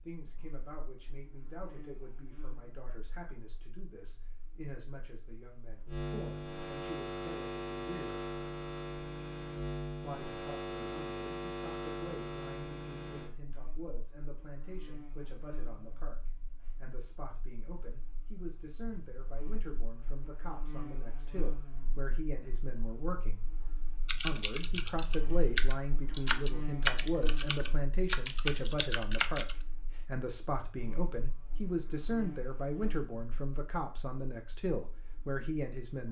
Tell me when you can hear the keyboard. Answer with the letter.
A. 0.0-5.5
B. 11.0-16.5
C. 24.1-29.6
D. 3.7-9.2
C.